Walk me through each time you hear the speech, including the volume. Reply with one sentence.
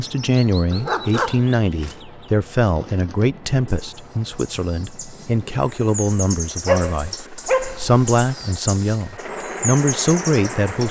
The speech can be heard from 0.0 to 10.8 s, at a steady volume.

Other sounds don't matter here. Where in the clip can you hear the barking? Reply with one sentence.
The barking can be heard from 0.7 to 1.9 s and from 6.7 to 8.0 s.